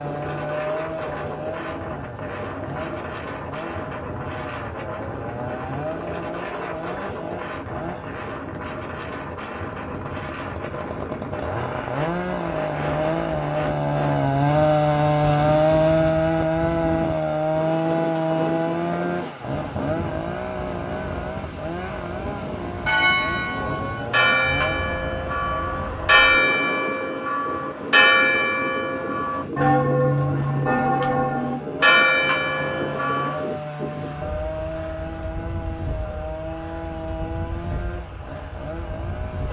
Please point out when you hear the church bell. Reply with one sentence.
The church bell can be heard from 22.9 to 33.5 s.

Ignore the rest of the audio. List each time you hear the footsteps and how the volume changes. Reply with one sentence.
The footsteps can't be heard in this clip.